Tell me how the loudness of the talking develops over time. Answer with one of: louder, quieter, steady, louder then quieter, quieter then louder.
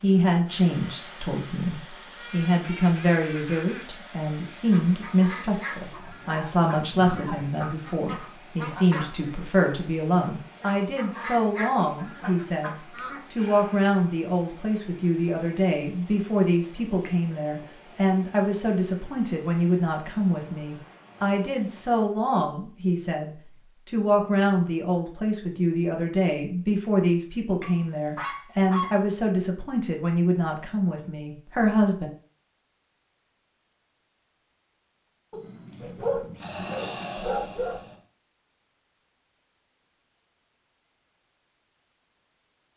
steady.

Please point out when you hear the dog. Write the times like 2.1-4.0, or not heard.
5.9-7.6, 12.9-13.8, 27.6-29.1, 35.3-38.0.